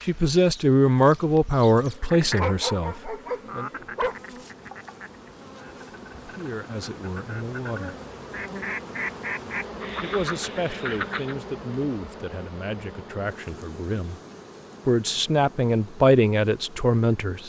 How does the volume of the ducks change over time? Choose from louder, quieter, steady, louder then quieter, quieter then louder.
quieter then louder.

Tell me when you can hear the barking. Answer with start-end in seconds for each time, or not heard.
1.7-4.2.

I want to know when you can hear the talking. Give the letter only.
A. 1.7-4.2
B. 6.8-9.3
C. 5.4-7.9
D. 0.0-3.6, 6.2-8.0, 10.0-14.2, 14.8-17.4
D.